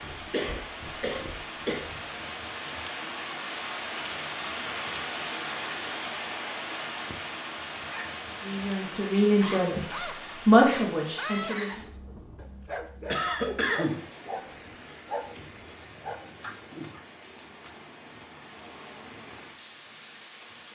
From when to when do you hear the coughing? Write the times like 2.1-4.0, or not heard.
0.3-1.8, 13.1-14.0.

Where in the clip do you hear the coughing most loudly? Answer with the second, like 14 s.
14 s.